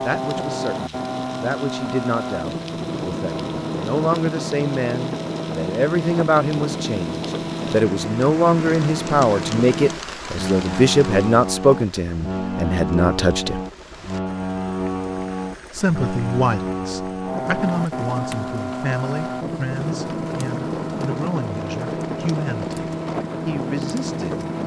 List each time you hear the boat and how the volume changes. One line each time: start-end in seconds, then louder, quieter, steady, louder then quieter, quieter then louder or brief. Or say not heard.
0.0-24.6 steady.